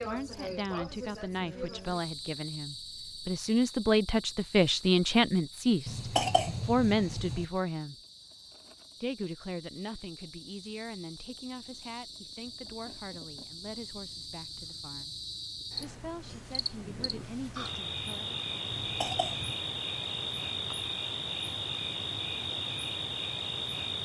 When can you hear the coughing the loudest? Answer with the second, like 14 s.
6 s.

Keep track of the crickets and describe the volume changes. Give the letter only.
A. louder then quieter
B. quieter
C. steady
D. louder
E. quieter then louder
E.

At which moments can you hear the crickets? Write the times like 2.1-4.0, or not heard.
0.0-23.9.